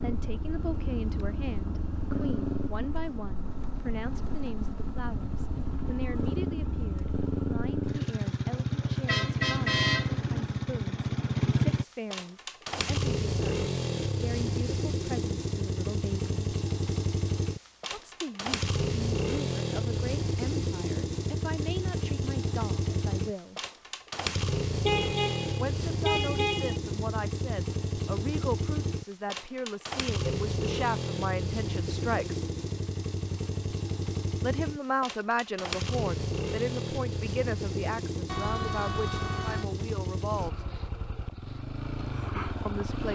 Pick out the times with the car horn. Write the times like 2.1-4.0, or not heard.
9.1-10.4, 24.9-26.8, 38.2-39.6.